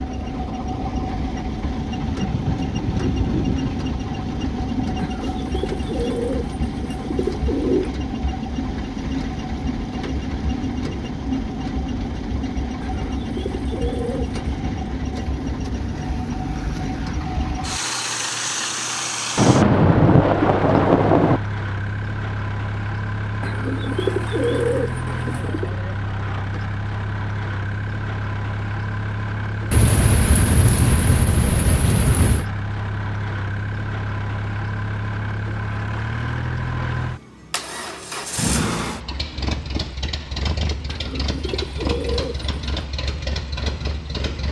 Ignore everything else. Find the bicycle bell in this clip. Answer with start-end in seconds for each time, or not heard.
not heard.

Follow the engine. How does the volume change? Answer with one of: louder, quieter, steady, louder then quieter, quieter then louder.
steady.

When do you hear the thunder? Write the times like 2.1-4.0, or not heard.
2.0-5.1, 19.4-21.4, 29.7-32.5.